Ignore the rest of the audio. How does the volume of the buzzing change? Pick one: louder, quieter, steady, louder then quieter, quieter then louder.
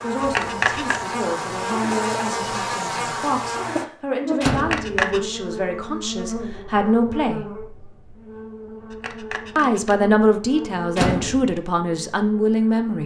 quieter.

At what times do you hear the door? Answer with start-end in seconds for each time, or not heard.
4.4-5.0, 10.9-11.6.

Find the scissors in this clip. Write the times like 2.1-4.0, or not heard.
0.2-1.1, 4.5-5.2, 8.9-9.9.